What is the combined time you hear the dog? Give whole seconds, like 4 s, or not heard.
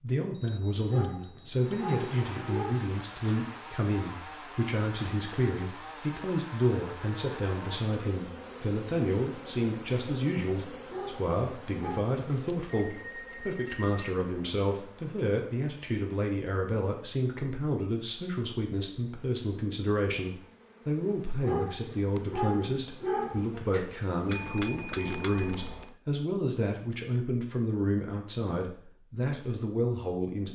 6 s.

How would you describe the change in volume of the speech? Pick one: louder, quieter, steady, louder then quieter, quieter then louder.
steady.